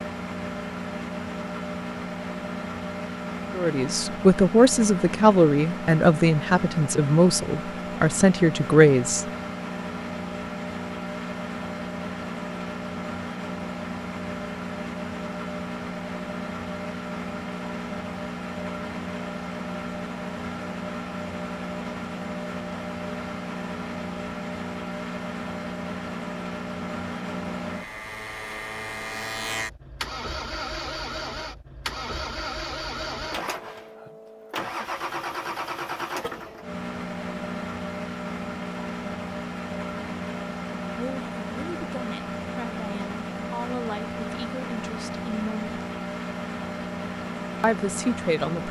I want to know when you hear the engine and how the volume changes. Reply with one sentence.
The engine can be heard from 0.0 to 48.6 s, at a steady volume.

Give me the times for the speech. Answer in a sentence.
The speech can be heard from 3.5 to 9.2 s, from 41.0 to 45.8 s and from 47.6 to 48.6 s.